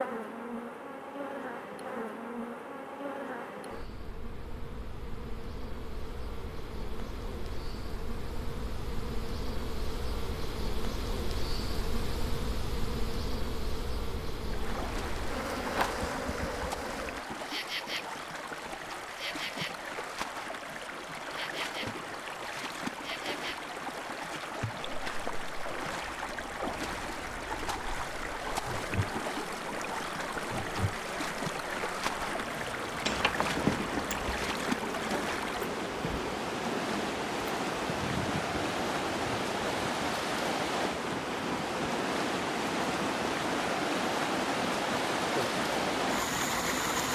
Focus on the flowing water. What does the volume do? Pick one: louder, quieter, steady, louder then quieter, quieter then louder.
louder.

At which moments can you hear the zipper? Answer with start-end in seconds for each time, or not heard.
33.0-34.4.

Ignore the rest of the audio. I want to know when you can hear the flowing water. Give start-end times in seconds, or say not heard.
14.4-47.1.